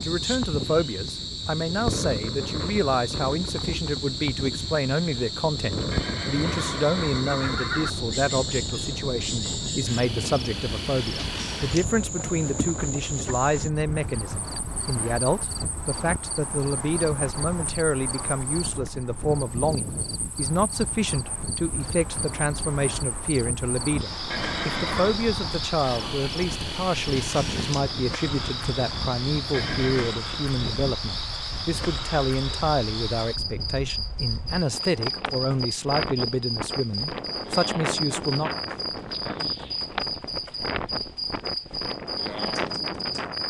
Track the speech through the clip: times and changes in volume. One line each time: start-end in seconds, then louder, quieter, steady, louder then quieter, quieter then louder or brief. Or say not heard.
0.0-38.5 steady.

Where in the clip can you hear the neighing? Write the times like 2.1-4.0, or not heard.
5.9-7.9, 24.3-25.1, 29.5-30.2.